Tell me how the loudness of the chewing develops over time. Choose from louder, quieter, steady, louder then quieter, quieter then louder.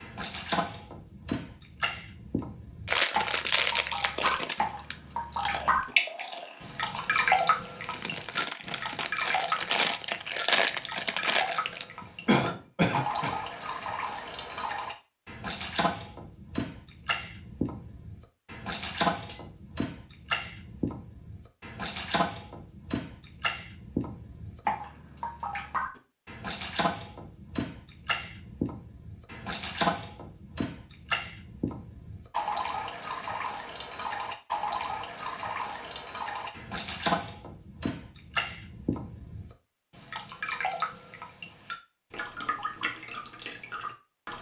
quieter then louder.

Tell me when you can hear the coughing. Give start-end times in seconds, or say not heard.
12.0-13.3.